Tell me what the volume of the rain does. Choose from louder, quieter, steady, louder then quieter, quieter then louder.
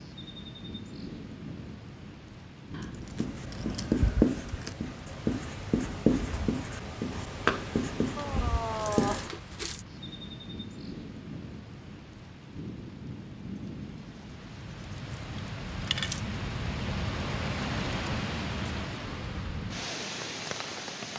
louder.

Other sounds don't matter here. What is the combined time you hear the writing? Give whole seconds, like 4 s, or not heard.
6 s.